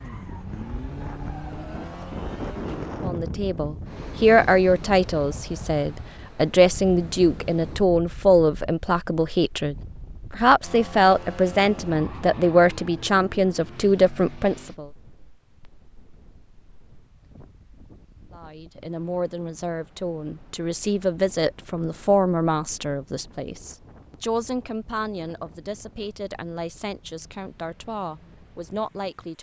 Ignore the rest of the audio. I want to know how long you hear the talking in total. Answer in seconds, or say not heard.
23 s.